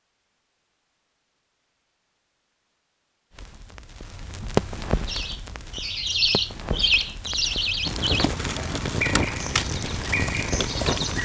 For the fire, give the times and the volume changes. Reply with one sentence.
The fire can be heard from 3.3 to 11.2 s, getting quieter then louder.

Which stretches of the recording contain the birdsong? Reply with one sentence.
You can hear the birdsong from 5.0 to 11.2 s.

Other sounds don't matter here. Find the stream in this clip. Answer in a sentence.
The stream can't be heard in this clip.